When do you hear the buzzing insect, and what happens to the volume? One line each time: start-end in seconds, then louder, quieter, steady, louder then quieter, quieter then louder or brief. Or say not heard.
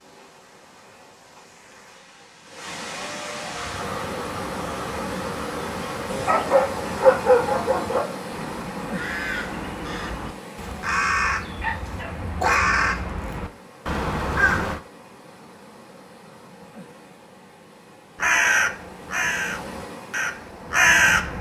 not heard.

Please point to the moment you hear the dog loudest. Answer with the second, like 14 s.
7 s.